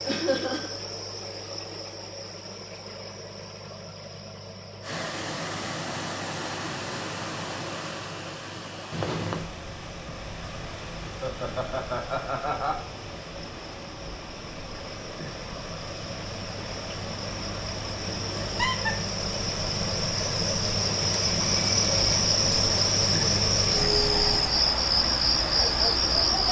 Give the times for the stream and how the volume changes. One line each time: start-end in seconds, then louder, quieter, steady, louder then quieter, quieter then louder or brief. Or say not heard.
4.8-26.4 quieter then louder.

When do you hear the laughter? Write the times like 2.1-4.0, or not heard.
0.1-0.8, 11.1-12.8, 18.4-18.9.